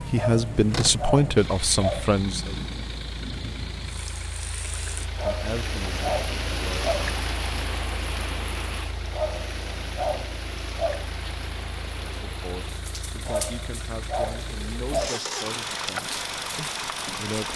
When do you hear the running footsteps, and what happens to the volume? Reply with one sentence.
You can't hear the running footsteps here.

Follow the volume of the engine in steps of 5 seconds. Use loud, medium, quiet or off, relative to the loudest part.
medium, medium, medium, loud.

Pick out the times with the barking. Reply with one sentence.
The barking can be heard from 0.1 to 2.1 s, from 5.2 to 7.1 s, from 9.1 to 11.1 s and from 13.2 to 15.2 s.